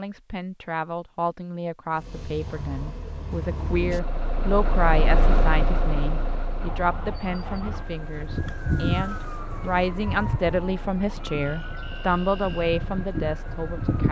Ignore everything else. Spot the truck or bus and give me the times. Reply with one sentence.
The truck or bus can be heard from 1.9 to 14.0 s.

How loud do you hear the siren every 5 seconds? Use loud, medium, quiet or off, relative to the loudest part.
off, loud, loud.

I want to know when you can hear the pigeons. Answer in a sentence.
The pigeons can't be heard in this clip.